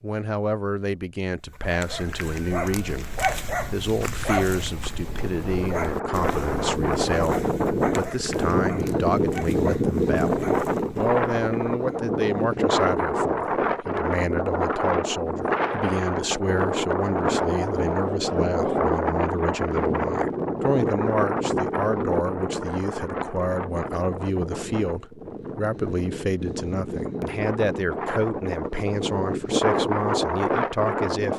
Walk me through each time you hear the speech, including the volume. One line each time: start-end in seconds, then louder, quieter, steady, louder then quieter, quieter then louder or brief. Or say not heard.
0.0-31.3 steady.